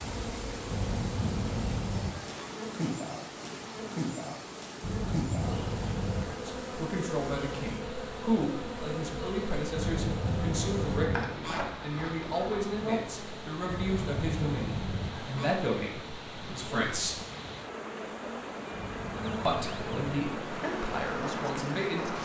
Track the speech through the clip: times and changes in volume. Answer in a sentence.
The speech can be heard from 6.3 to 17.1 s, at a steady volume; and briefly from 19.4 to 22.1 s.